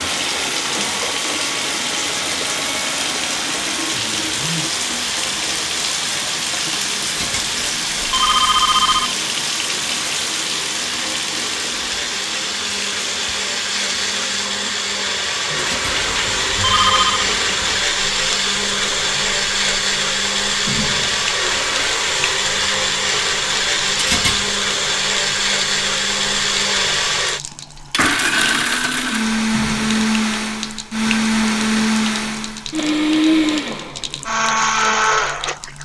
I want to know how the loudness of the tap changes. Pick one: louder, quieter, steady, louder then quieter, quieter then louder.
quieter.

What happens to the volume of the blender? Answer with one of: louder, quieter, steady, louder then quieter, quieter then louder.
louder.